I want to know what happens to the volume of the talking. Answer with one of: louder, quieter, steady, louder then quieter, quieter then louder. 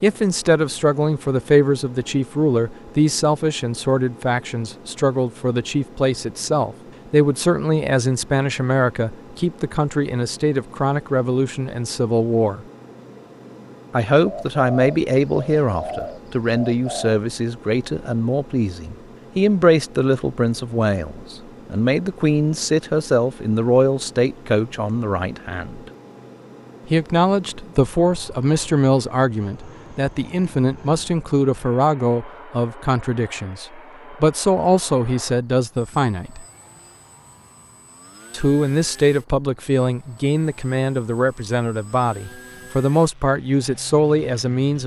steady.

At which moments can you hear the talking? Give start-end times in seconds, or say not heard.
0.0-12.7, 13.9-25.9, 26.9-36.5, 38.3-44.8.